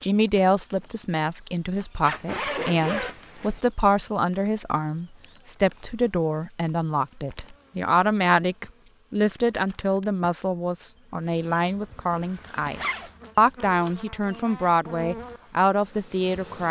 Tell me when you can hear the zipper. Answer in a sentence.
The zipper can be heard from 2.0 to 3.6 s and from 12.7 to 13.1 s.